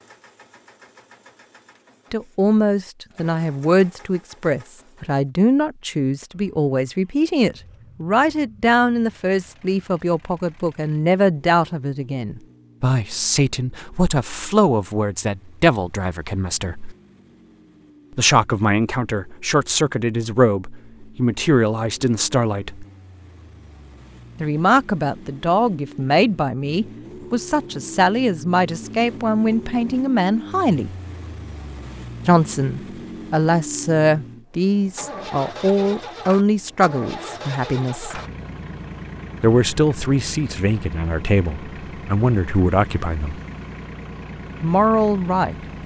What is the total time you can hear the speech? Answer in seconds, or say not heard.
37 s.